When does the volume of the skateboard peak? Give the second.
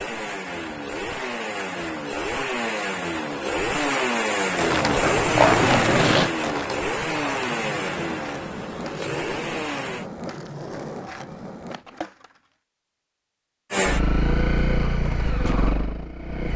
6 s.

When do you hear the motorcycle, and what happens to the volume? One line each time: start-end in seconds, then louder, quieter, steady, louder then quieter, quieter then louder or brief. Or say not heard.
0.0-10.1 louder then quieter
13.7-16.5 brief.